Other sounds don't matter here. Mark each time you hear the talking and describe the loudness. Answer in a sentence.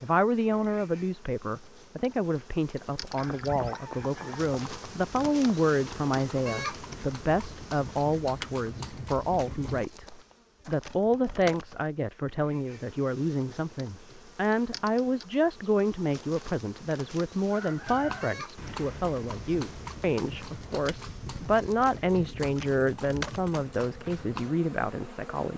You can hear the talking from 0.0 to 25.5 s, at a steady volume.